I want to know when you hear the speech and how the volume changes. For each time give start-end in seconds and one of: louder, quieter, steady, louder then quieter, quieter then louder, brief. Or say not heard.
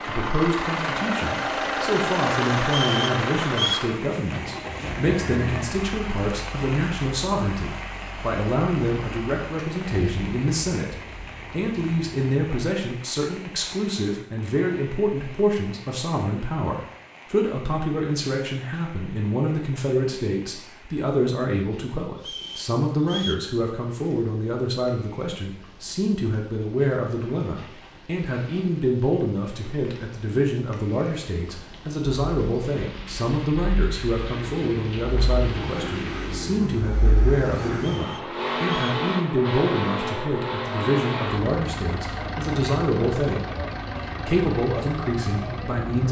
0.1-43.5 steady
44.2-46.0 brief.